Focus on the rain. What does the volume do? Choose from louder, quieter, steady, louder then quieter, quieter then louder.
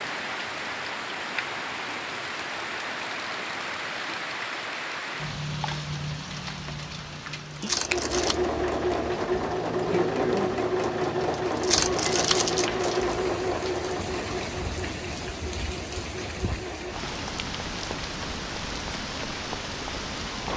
quieter then louder.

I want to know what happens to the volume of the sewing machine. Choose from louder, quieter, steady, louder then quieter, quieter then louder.
quieter.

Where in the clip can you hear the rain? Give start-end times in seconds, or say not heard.
0.0-20.5.